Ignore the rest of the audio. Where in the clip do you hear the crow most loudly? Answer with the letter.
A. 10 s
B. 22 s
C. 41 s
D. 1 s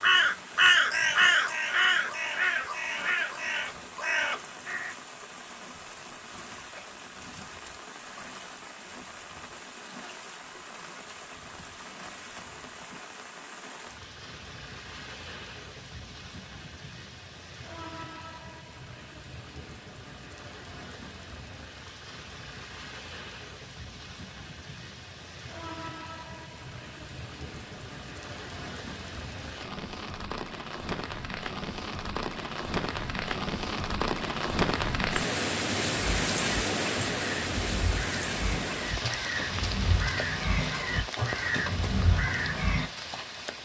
D.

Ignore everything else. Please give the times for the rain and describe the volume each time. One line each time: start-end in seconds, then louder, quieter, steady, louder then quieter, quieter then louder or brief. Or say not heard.
0.0-43.5 louder.